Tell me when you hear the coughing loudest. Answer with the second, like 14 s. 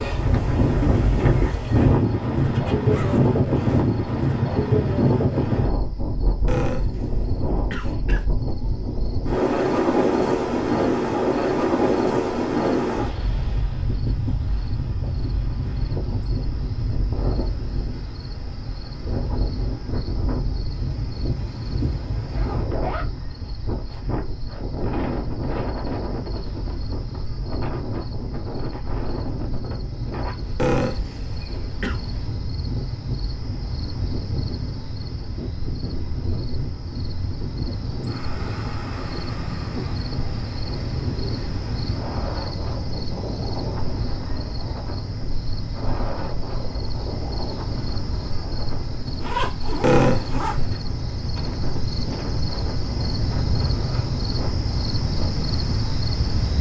50 s.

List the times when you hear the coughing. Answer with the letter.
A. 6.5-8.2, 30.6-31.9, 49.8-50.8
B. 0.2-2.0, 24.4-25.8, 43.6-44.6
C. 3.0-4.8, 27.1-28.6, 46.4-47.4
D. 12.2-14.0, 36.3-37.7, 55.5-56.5
A.